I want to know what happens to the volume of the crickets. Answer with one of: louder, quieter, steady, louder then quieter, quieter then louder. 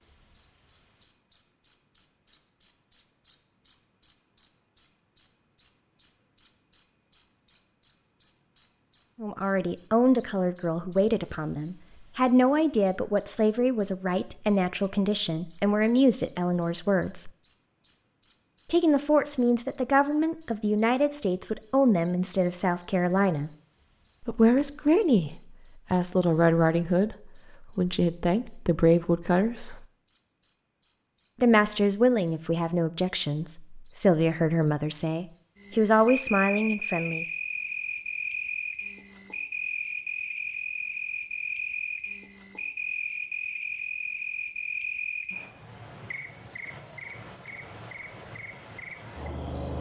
quieter.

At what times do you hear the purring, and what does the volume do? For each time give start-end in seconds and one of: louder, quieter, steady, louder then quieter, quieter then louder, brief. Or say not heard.
not heard.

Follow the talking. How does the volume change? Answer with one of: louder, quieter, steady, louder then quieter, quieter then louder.
steady.